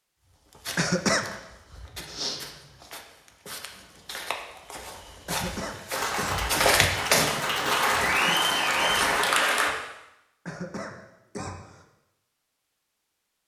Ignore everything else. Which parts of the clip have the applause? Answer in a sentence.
You can hear the applause from 5.9 to 9.7 s.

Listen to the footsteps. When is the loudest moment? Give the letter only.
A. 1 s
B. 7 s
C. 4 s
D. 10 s
B.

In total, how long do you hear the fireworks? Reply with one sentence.
The fireworks can't be heard in this clip.